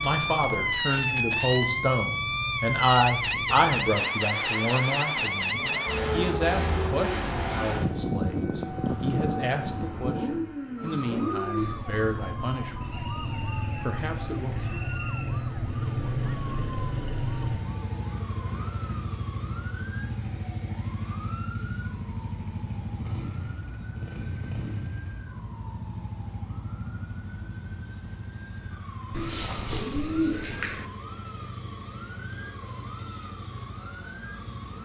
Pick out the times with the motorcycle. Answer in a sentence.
The motorcycle can be heard from 0.0 to 34.8 s.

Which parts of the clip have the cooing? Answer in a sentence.
The cooing can be heard from 29.1 to 30.9 s.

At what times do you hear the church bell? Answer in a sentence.
The church bell can't be heard in this clip.